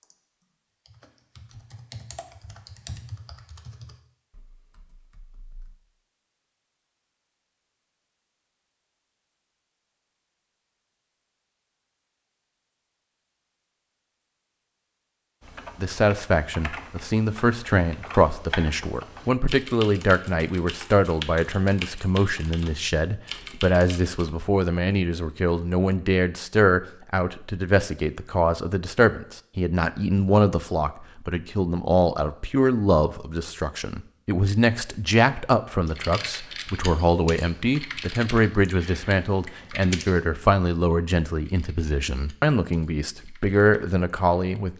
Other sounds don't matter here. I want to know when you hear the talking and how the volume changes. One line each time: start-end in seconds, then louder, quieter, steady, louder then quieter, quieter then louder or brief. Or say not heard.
15.8-44.7 steady.